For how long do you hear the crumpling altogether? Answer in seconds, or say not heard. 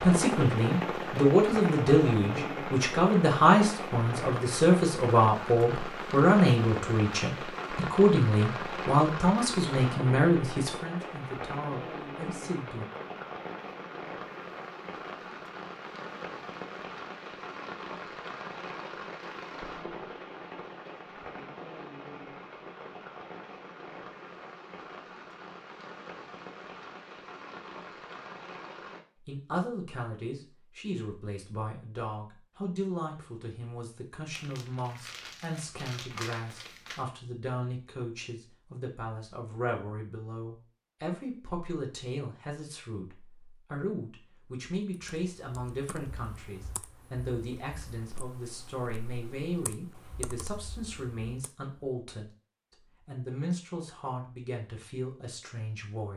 3 s.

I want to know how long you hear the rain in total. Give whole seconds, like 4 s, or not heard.
29 s.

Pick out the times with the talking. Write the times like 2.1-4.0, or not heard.
0.0-12.8, 29.2-52.3, 53.0-56.1.